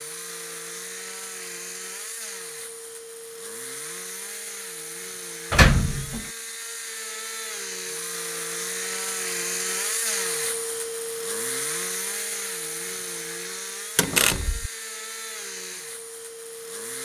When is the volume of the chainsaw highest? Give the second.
10 s.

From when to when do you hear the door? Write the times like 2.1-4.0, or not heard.
5.5-6.2, 13.9-14.7.